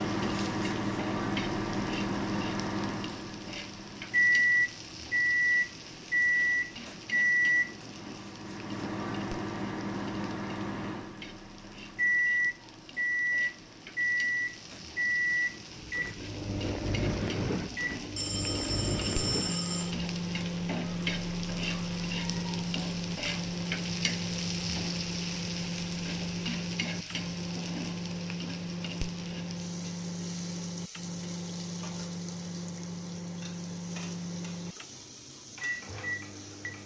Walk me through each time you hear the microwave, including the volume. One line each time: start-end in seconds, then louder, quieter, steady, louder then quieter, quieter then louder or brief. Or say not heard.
0.0-36.8 quieter.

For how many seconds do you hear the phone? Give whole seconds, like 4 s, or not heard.
2 s.